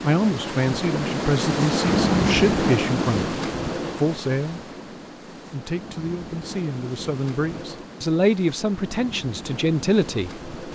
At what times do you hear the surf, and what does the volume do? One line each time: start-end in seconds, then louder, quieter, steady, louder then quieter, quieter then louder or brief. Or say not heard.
0.0-10.6 quieter.